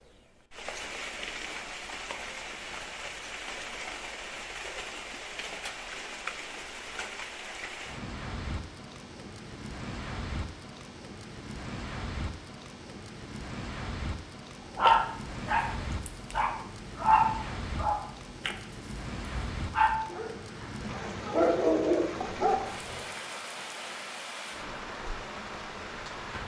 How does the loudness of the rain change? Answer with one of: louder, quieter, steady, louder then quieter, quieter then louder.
steady.